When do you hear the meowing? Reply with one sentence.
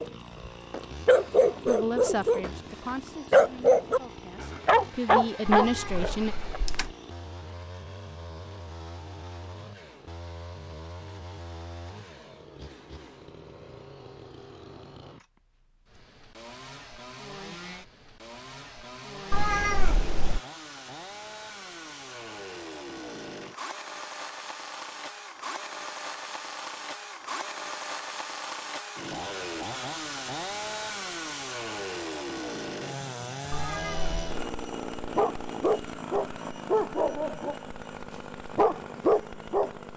You can hear the meowing from 5.5 to 6.9 s, from 19.3 to 20.4 s and from 33.5 to 34.2 s.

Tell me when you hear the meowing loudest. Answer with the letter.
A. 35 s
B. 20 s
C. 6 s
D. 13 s
B.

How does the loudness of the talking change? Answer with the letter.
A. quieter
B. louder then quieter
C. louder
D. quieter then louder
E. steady
D.